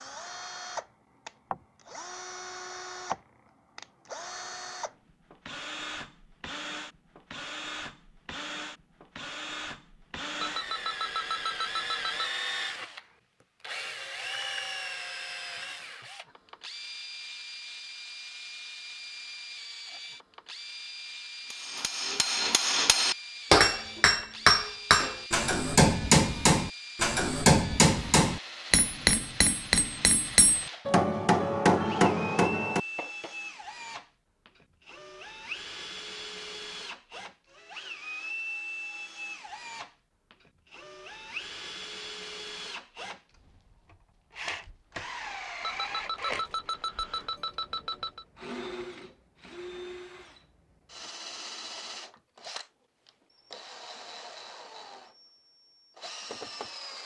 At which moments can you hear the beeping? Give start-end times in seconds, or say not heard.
10.4-12.3, 45.6-48.2.